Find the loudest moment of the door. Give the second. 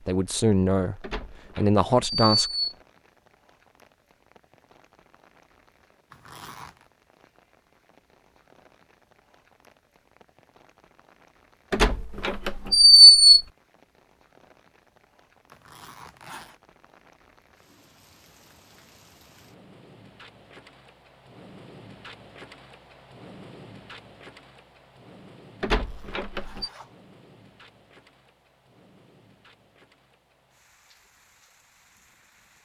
13 s.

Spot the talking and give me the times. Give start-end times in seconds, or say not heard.
0.1-2.5.